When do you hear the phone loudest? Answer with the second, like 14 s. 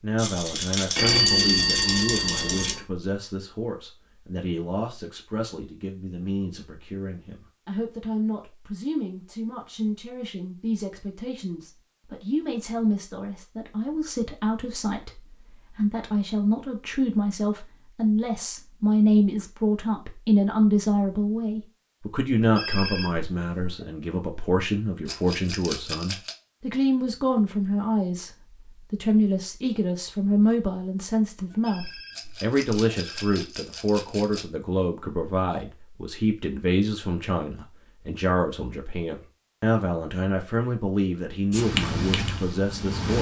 1 s.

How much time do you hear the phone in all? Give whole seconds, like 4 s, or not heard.
5 s.